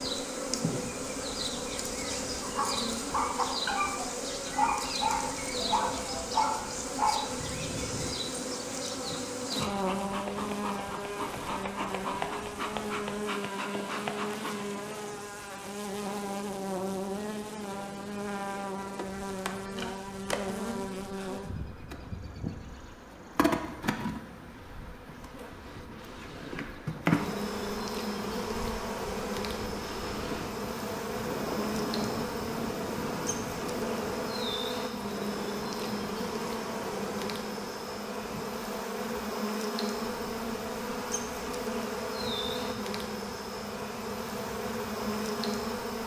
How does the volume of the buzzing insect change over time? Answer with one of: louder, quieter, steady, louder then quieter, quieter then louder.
steady.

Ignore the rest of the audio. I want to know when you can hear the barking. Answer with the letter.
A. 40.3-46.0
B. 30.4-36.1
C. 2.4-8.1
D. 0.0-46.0
C.